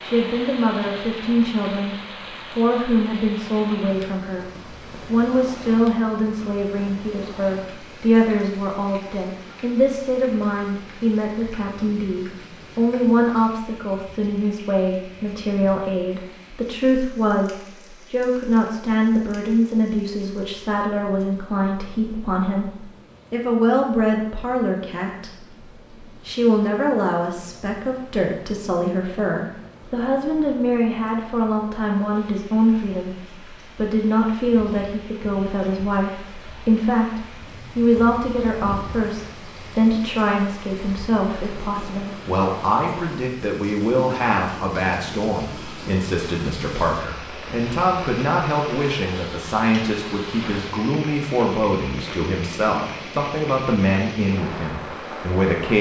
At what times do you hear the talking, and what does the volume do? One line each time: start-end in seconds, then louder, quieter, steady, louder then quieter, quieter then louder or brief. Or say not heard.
0.0-55.7 steady.